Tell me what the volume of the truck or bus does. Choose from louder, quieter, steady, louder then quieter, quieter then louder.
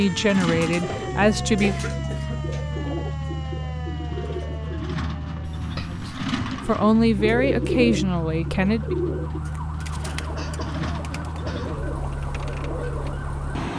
steady.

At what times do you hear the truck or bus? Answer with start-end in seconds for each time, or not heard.
0.0-13.7.